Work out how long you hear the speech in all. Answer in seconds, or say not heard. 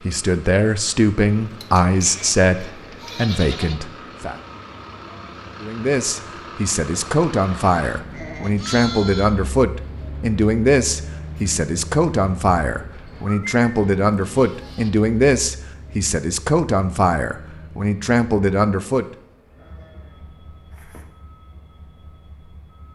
18 s.